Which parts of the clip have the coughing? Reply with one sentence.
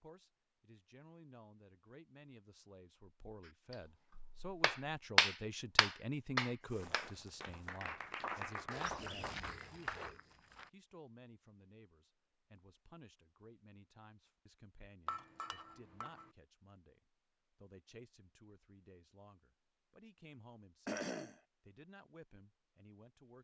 You can hear the coughing from 8.9 to 9.3 s and from 20.9 to 21.4 s.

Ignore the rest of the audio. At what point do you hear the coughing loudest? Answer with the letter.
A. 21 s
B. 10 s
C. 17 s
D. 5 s
A.